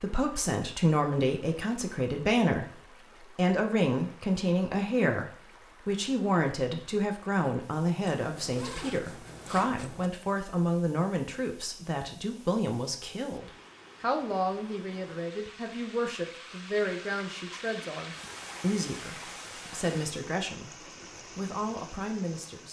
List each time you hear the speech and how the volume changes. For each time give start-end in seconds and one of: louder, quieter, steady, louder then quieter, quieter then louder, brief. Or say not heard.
0.0-22.6 quieter.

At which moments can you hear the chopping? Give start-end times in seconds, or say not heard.
not heard.